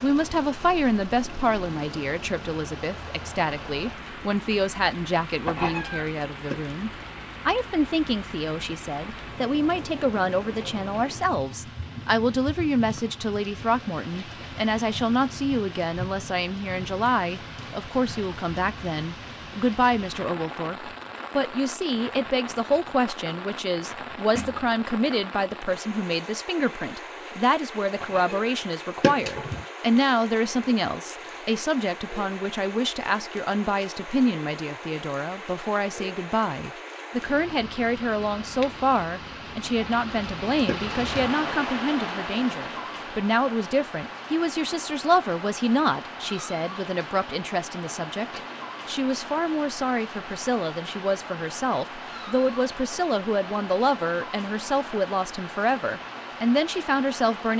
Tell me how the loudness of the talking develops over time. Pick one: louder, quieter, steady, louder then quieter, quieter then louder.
steady.